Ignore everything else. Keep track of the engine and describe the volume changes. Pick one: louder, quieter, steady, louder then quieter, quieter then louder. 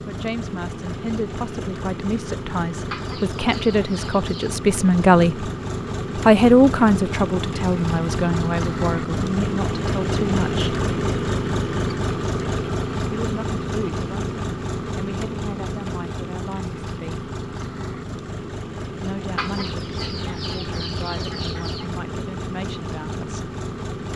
louder then quieter.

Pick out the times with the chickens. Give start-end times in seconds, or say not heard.
2.9-4.5, 19.4-21.9.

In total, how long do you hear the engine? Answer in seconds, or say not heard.
24 s.